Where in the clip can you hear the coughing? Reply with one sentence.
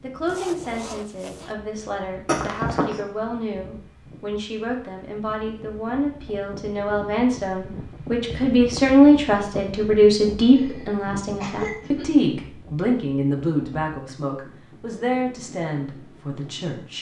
The coughing can be heard from 2.2 to 3.0 s and from 10.6 to 12.1 s.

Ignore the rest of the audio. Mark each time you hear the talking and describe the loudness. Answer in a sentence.
You can hear the talking from 0.0 to 16.9 s, getting louder then quieter.